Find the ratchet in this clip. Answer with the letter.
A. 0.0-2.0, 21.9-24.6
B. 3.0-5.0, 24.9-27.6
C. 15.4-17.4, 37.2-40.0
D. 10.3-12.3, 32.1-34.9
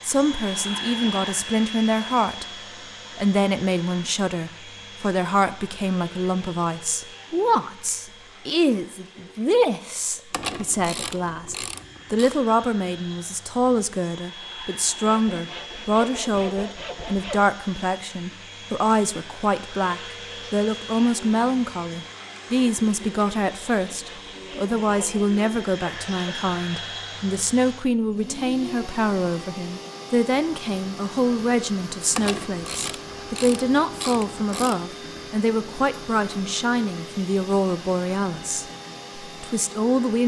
D.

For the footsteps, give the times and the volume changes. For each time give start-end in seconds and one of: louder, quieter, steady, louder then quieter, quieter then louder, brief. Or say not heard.
not heard.